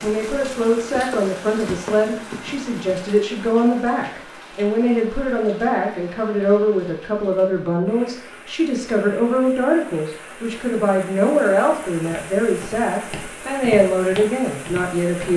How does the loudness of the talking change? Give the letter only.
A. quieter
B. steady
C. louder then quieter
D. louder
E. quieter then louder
B.